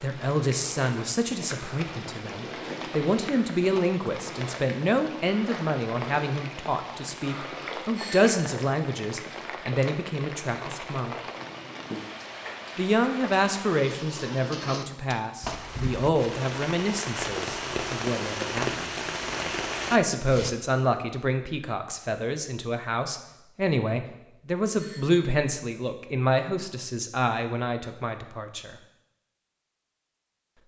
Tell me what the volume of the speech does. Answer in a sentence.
The loudness of the speech stays about the same.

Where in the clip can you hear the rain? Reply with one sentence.
The rain can be heard from 0.0 to 20.5 s.